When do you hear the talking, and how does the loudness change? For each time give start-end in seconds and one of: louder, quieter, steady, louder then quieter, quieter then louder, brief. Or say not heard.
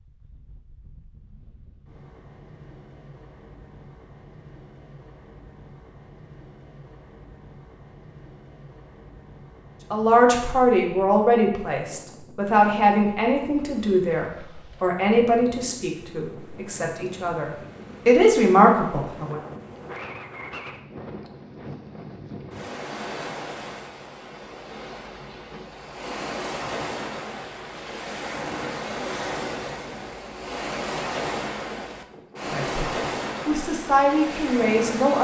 9.9-19.4 quieter then louder
32.5-35.1 brief.